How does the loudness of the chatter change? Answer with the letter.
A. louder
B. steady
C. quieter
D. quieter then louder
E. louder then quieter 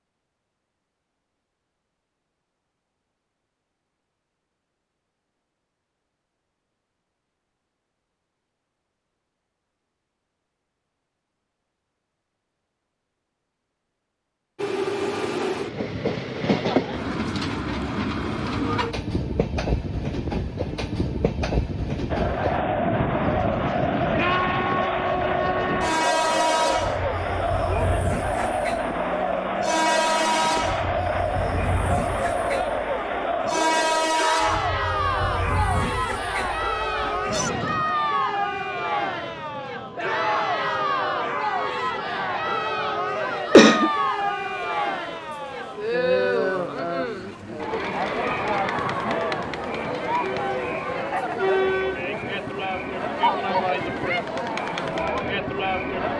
B.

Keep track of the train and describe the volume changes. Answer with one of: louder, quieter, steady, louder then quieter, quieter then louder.
quieter.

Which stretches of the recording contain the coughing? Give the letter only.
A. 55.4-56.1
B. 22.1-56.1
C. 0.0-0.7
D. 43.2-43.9
D.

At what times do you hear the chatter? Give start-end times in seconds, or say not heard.
22.1-56.1.